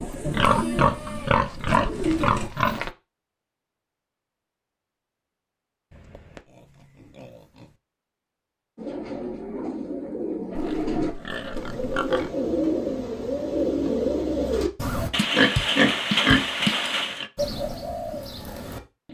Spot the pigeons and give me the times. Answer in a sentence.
The pigeons can be heard from 0.0 to 2.5 s, from 8.8 to 15.1 s and from 17.4 to 19.0 s.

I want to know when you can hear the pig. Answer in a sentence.
The pig can be heard from 0.2 to 2.9 s, from 5.9 to 7.7 s, from 10.6 to 12.3 s and from 15.1 to 17.2 s.